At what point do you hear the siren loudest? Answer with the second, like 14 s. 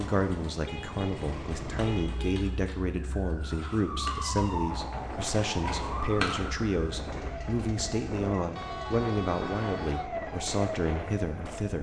6 s.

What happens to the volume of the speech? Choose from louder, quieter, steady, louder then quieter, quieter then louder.
steady.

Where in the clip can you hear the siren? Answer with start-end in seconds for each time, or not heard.
0.0-11.7.